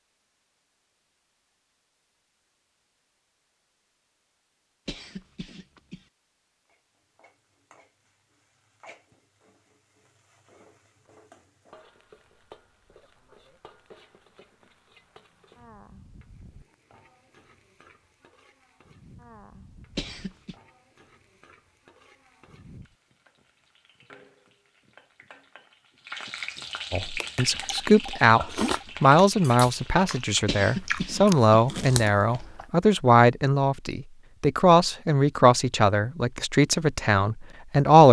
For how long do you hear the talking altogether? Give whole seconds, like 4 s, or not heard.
11 s.